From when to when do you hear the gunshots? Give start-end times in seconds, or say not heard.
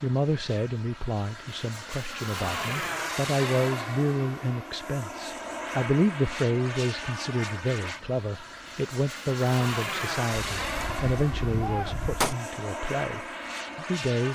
10.4-12.3.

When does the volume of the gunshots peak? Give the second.
12 s.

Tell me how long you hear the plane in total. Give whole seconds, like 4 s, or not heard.
14 s.